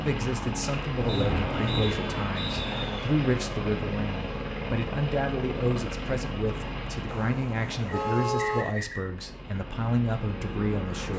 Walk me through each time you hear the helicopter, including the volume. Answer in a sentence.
The helicopter can be heard from 0.0 to 11.1 s, getting quieter.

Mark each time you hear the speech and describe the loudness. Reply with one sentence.
You can hear the speech from 0.0 to 11.1 s, at a steady volume.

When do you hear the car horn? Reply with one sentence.
You can hear the car horn from 0.9 to 3.0 s and from 7.0 to 8.8 s.